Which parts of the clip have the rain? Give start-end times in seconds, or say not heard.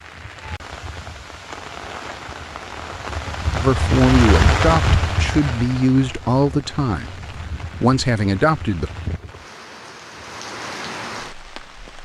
0.0-11.9.